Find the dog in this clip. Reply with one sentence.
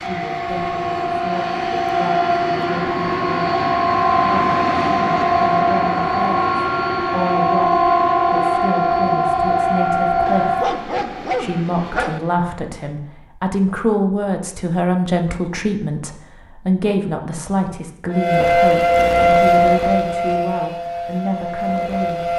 The dog can be heard from 10.2 to 12.2 s.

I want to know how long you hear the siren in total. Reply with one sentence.
The siren can be heard for 15 seconds in total.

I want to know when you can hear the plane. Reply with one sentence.
You can hear the plane from 0.0 to 12.5 s.